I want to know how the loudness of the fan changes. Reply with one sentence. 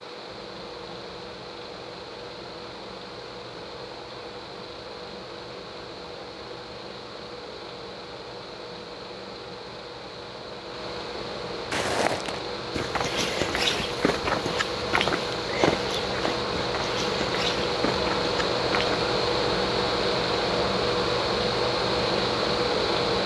The volume of the fan goes up.